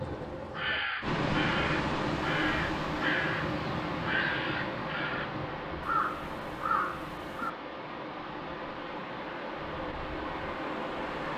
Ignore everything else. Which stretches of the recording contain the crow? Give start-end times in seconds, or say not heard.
0.0-7.5.